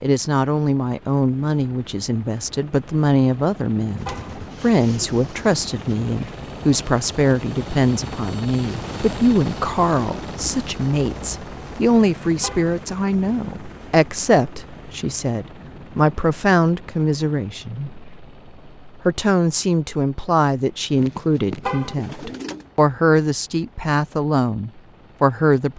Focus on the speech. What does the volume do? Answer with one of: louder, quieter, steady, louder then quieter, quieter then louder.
steady.